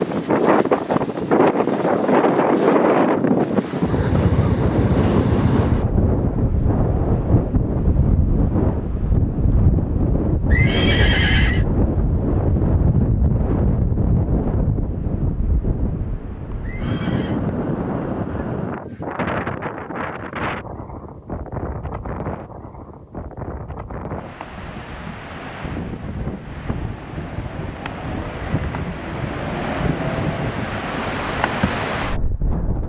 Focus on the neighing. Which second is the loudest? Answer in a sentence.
The volume of the neighing peaks at 11 seconds.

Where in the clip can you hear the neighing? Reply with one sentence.
You can hear the neighing from 10.5 to 11.7 s and from 16.6 to 17.4 s.